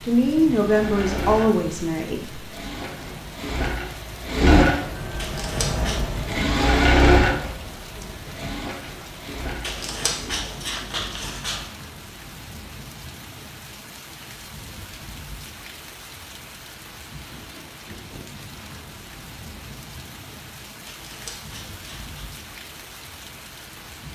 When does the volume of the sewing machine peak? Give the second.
7 s.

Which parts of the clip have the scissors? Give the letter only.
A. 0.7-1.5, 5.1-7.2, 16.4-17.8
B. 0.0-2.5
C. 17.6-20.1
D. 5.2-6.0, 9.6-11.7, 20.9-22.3
D.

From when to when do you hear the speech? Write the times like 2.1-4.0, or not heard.
0.0-2.5.